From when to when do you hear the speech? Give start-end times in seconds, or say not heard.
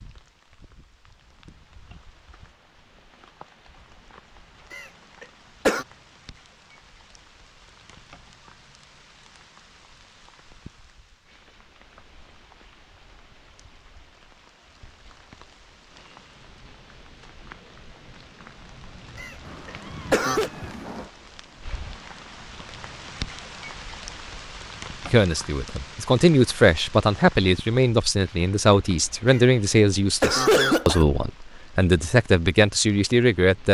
25.1-33.6.